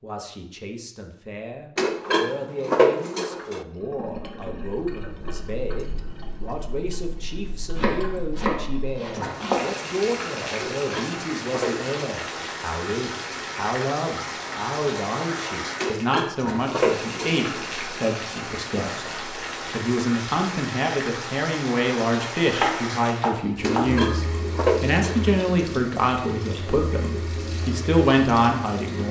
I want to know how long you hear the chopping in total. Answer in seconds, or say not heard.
3 s.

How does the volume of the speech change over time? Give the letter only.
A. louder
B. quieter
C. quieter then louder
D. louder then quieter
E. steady
A.